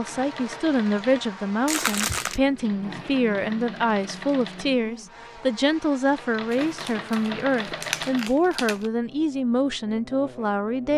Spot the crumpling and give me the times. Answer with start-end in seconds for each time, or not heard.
1.6-2.4, 6.5-8.9.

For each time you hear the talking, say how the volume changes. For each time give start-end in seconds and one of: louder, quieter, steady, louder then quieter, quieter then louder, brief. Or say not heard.
0.0-10.9 steady.